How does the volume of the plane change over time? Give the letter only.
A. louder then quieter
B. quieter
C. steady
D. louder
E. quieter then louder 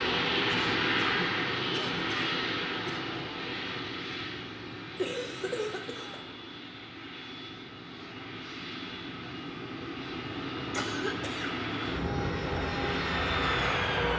E.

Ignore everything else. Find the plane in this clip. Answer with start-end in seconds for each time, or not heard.
0.0-14.1.